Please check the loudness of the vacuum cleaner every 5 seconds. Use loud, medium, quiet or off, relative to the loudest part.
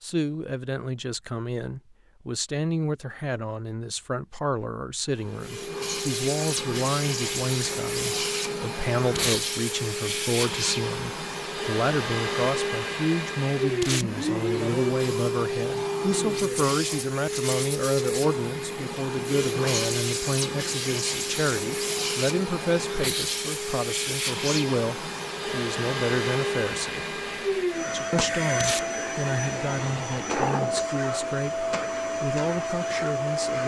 off, loud, loud, loud, loud, loud, loud.